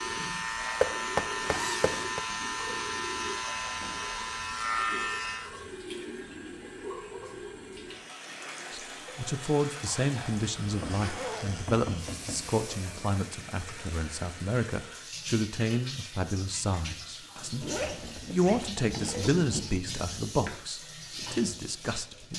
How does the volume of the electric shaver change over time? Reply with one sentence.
The volume of the electric shaver stays about the same.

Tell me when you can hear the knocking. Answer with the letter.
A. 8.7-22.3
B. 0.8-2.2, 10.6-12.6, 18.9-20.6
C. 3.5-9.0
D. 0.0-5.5
B.